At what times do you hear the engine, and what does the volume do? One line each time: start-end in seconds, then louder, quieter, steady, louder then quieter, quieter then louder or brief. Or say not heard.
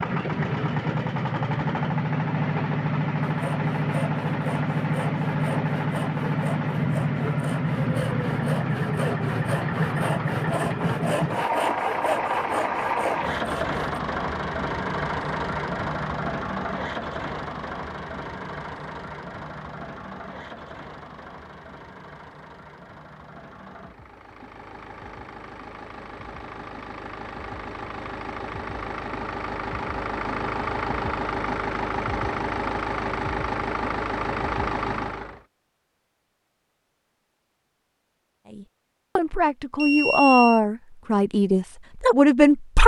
0.0-35.4 quieter then louder.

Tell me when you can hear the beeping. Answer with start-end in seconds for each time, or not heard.
39.8-40.6.